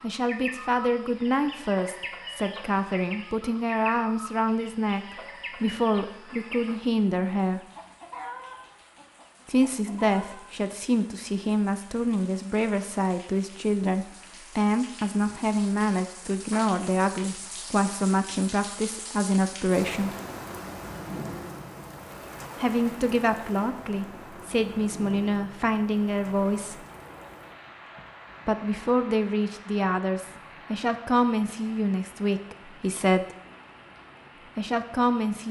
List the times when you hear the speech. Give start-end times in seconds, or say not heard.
0.0-5.0, 5.6-7.6, 9.4-20.1, 22.6-26.9, 28.4-33.2, 34.5-35.4.